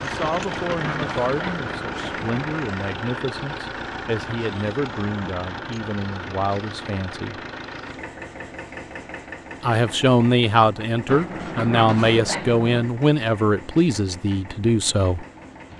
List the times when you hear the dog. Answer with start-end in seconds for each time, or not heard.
0.2-2.4, 11.1-12.8.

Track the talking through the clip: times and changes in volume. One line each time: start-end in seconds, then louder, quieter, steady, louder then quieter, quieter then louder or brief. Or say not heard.
0.0-7.4 steady
9.6-15.2 quieter.